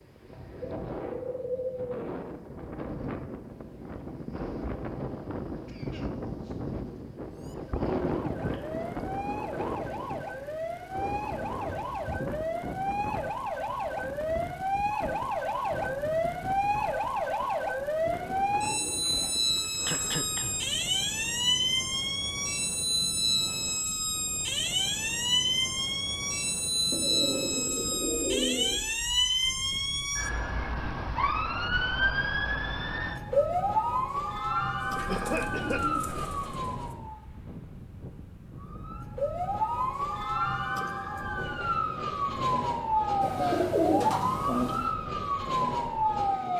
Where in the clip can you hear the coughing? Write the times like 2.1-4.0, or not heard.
5.7-6.6, 19.9-20.8, 35.0-35.8.